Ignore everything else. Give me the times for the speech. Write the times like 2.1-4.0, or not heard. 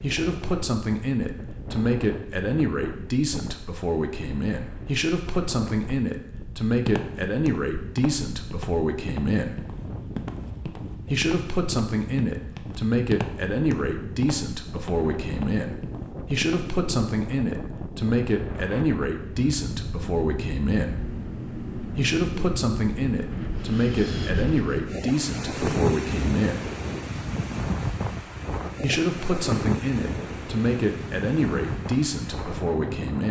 0.0-9.6, 11.1-20.9, 21.9-26.6, 28.8-33.2.